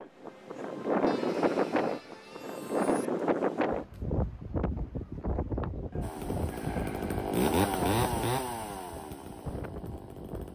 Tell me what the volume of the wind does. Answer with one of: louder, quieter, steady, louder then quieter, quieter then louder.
quieter.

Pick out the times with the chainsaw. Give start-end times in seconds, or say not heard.
6.0-10.5.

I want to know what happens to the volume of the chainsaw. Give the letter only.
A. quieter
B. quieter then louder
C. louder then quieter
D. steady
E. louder
C.